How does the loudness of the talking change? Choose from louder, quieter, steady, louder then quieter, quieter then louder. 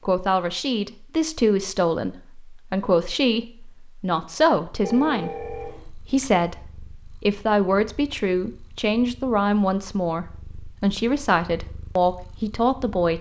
steady.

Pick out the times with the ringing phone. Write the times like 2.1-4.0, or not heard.
4.8-5.9.